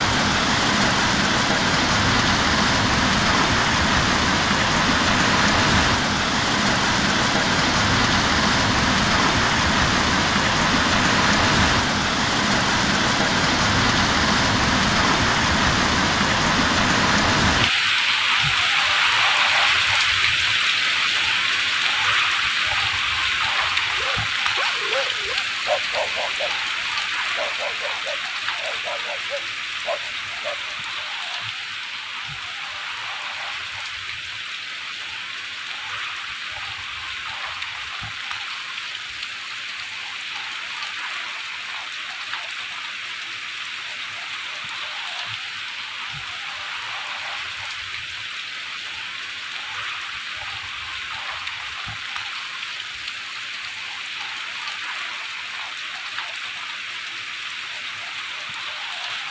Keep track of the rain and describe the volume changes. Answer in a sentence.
The volume of the rain goes down.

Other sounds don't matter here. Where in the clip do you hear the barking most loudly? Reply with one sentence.
The loudest moment of the barking is at 26 seconds.